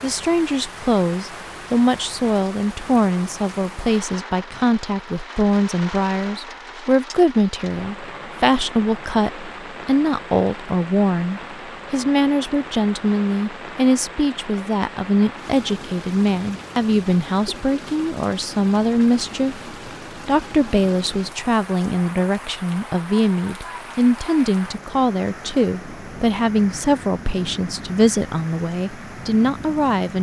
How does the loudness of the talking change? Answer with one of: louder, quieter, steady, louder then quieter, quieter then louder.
steady.